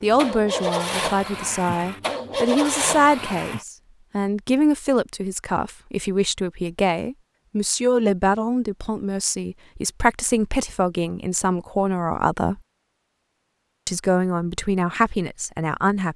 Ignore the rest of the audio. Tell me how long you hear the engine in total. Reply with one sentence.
You can hear the engine for 4 seconds altogether.